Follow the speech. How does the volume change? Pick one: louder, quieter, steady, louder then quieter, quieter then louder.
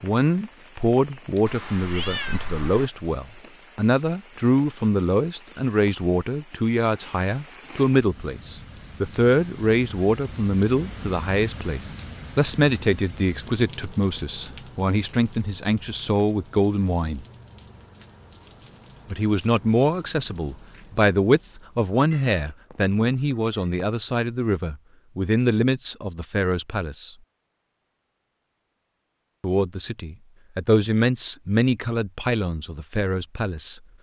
steady.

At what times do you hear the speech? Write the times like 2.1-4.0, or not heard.
0.0-17.2, 19.1-27.1, 29.4-33.8.